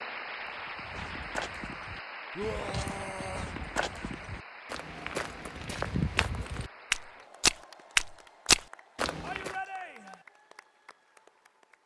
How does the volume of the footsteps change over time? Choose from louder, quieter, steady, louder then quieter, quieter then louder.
louder.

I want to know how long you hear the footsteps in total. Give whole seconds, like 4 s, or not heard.
9 s.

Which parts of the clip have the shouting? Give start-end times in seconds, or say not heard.
2.4-3.5, 9.2-10.2.